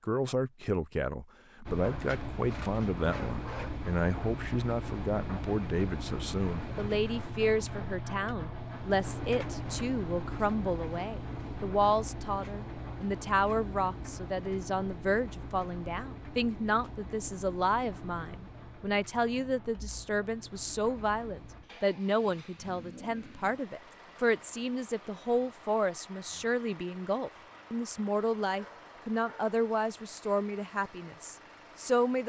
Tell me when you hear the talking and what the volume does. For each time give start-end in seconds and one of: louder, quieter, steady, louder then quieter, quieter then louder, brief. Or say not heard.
0.1-32.2 steady.